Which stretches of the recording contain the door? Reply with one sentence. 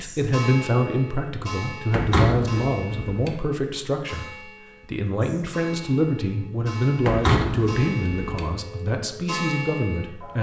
The door can be heard from 1.9 to 3.4 s and from 7.0 to 8.5 s.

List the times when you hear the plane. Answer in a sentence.
The plane can't be heard in this clip.